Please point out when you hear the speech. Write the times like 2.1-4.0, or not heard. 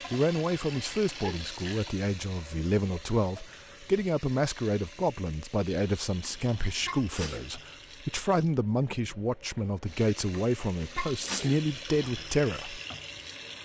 0.1-12.8.